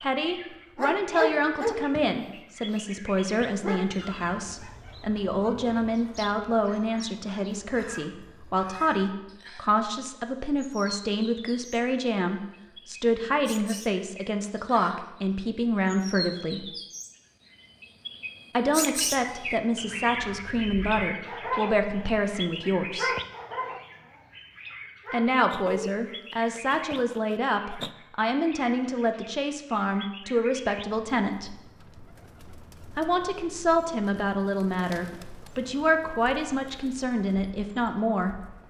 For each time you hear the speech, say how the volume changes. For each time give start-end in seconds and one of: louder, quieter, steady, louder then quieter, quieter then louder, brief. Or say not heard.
0.0-16.7 steady
18.5-23.1 steady
25.1-31.5 steady
33.0-38.4 steady.